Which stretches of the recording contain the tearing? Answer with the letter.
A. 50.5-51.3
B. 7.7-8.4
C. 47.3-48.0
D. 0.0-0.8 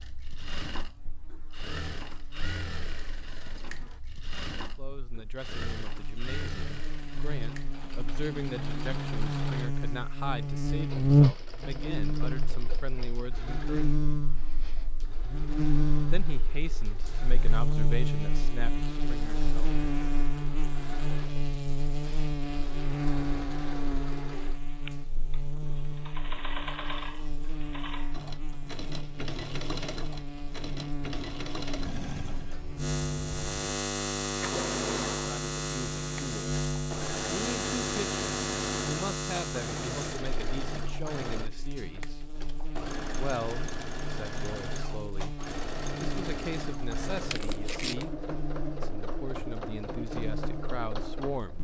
C.